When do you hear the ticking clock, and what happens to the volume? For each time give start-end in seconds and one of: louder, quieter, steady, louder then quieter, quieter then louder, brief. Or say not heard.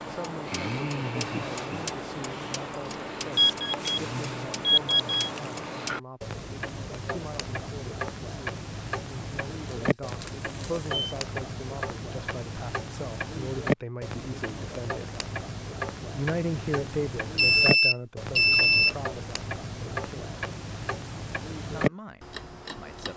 0.0-23.1 steady.